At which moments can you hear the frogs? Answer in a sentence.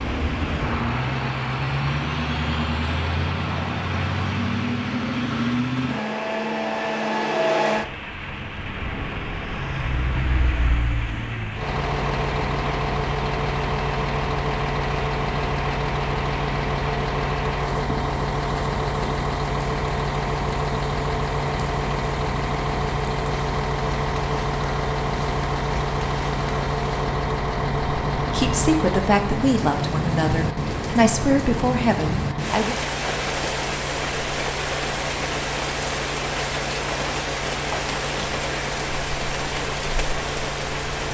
The frogs can't be heard in this clip.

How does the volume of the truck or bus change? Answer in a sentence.
The volume of the truck or bus goes down.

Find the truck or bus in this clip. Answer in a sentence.
You can hear the truck or bus from 0.0 to 41.0 s.